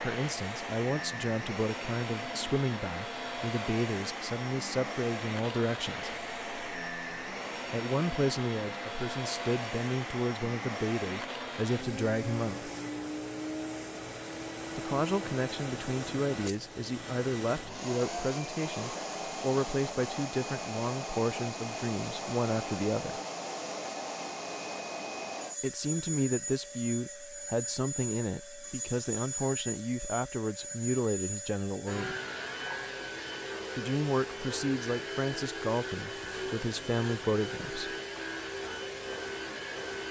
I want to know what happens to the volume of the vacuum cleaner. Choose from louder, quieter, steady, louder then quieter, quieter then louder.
steady.